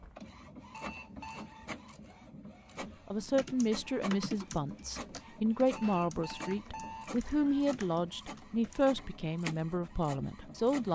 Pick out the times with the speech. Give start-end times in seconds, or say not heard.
3.0-10.8.